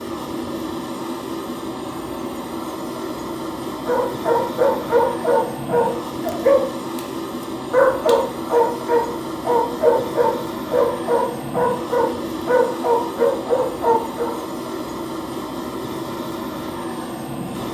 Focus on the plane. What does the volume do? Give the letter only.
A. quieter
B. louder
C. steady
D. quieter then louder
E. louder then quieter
C.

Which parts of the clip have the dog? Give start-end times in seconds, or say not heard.
3.9-7.0, 7.7-14.3.